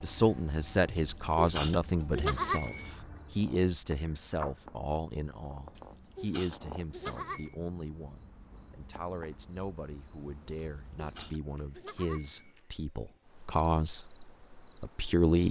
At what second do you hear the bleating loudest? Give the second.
2 s.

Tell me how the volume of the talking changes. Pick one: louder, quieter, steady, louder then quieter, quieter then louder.
quieter then louder.